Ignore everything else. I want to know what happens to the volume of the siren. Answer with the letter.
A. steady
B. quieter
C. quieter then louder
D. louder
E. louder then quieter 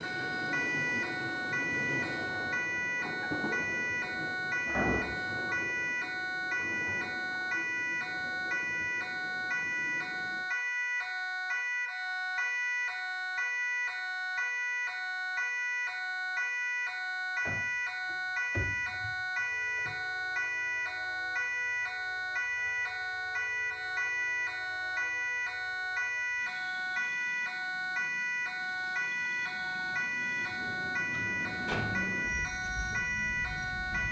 A.